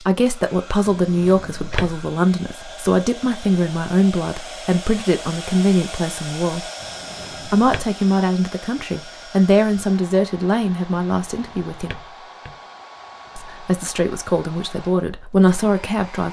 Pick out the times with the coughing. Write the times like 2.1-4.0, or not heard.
not heard.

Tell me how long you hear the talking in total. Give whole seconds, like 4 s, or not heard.
14 s.